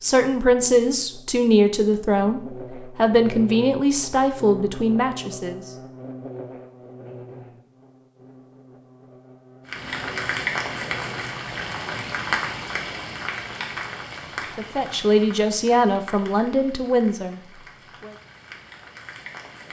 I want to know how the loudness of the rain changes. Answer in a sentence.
The loudness of the rain goes down.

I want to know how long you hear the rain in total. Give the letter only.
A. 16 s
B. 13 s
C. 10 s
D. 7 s
C.